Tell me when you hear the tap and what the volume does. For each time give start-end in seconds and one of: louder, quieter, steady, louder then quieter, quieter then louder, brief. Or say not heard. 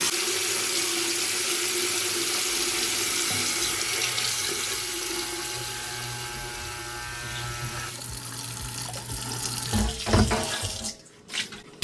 0.0-11.8 quieter then louder.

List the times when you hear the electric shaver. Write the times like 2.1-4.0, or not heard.
2.6-8.0.